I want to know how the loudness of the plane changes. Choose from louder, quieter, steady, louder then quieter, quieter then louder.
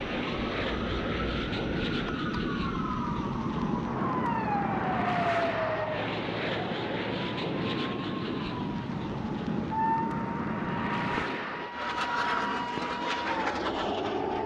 steady.